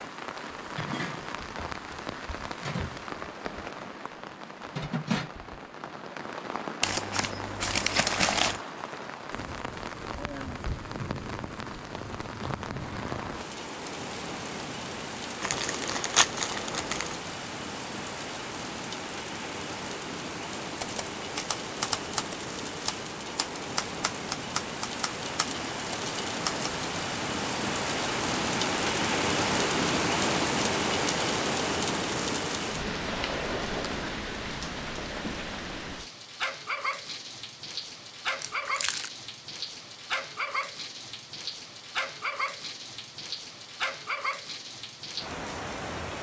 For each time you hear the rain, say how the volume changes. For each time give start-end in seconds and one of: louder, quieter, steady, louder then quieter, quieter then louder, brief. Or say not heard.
0.0-46.1 louder then quieter.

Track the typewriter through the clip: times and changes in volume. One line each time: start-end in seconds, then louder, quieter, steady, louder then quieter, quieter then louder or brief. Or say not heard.
20.8-26.7 quieter.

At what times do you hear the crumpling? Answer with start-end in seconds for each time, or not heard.
6.8-8.6, 15.4-17.1, 38.4-39.1.